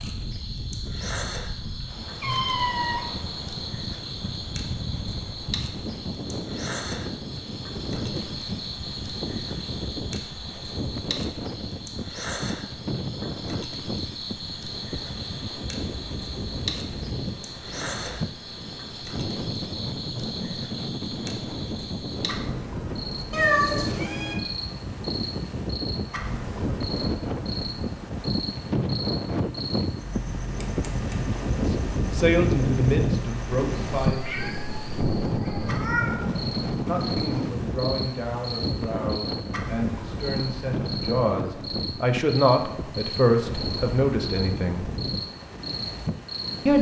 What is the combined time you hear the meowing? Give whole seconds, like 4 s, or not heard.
4 s.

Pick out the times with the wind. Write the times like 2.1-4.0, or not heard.
0.0-46.7.